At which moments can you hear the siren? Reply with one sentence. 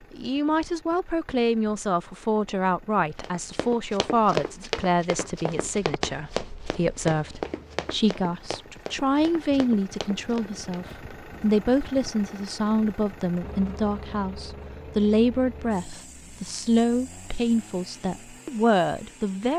You can't hear the siren here.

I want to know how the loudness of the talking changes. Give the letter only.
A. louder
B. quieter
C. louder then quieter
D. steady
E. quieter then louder
D.